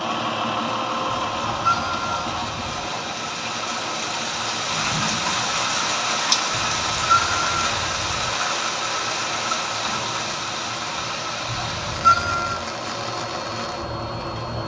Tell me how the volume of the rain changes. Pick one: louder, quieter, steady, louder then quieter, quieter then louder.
louder then quieter.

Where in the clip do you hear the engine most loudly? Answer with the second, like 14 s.
1 s.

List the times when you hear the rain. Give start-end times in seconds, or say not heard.
0.0-14.6.